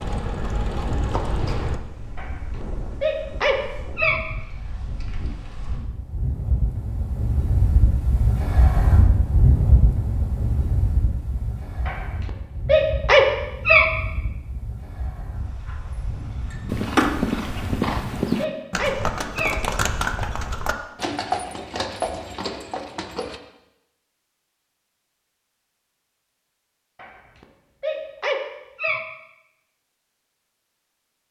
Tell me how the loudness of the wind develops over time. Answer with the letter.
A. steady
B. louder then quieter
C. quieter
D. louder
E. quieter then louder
B.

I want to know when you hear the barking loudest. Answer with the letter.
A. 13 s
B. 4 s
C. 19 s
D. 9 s
A.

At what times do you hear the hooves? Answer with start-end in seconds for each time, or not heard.
0.0-1.8, 16.6-23.4.